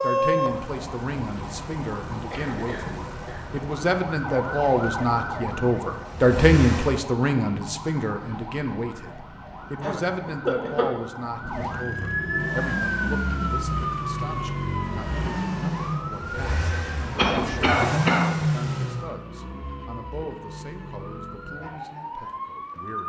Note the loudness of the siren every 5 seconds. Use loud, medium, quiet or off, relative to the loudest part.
medium, medium, loud, medium, medium.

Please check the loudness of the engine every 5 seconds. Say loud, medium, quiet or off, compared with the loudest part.
loud, medium, medium, loud, off.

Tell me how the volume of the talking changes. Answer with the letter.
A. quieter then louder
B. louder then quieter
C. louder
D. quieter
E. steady
B.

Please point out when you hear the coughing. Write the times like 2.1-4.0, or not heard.
2.3-3.4, 9.8-10.9, 17.1-18.2.